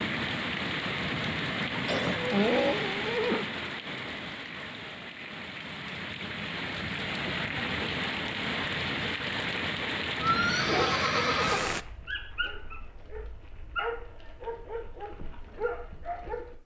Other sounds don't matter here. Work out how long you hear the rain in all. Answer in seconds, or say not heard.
12 s.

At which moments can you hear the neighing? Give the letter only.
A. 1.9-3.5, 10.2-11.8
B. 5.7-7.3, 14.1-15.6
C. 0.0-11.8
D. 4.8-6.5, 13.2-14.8
A.